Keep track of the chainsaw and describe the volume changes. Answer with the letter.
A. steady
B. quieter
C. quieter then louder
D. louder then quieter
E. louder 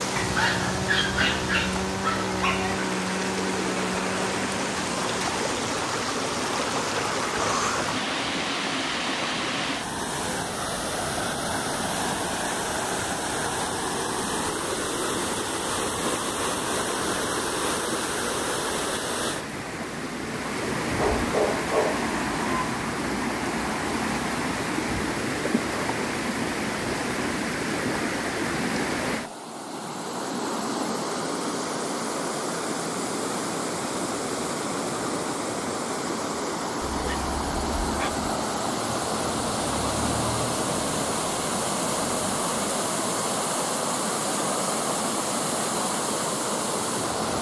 A.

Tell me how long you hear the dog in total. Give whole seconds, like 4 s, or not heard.
5 s.